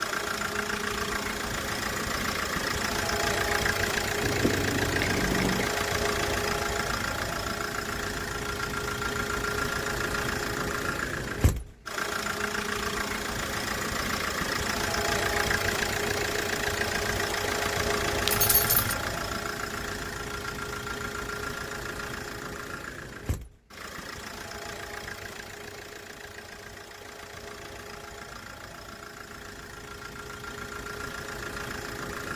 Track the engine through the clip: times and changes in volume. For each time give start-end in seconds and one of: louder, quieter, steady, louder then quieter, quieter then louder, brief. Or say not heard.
0.0-32.3 quieter.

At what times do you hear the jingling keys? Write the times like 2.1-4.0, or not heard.
4.2-5.7, 18.2-18.9.